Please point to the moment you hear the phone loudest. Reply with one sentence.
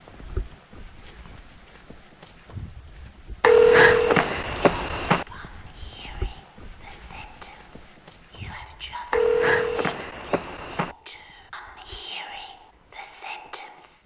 The loudest moment of the phone is at 4 seconds.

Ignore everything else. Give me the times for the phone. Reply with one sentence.
You can hear the phone from 3.4 to 5.2 s and from 9.1 to 10.9 s.